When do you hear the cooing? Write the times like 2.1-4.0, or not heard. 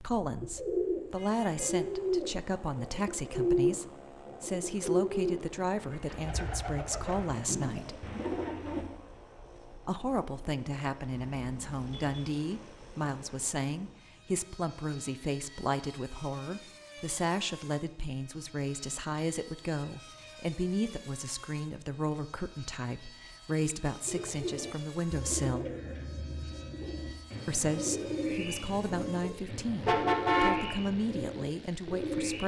0.4-8.8, 24.1-32.4.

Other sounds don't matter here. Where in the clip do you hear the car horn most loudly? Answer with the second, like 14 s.
30 s.